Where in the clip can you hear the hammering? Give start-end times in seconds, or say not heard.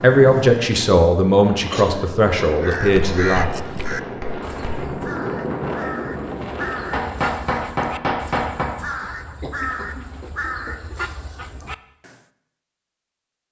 3.1-4.9, 6.9-8.7.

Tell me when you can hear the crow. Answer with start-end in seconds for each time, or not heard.
2.6-12.2.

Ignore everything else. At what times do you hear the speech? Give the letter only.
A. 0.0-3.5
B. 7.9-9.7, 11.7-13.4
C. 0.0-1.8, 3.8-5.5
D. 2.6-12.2
A.